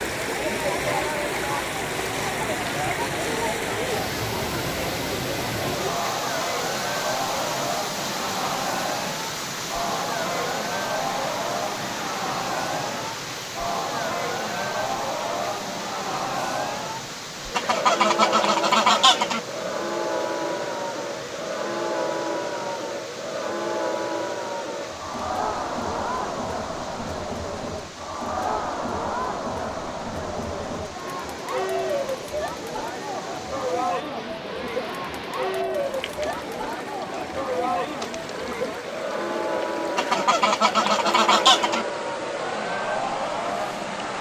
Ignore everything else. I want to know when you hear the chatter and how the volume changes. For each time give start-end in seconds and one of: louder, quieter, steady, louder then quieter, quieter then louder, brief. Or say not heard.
0.0-44.1 steady.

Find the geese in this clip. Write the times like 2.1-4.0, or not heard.
17.6-19.4, 40.0-41.9.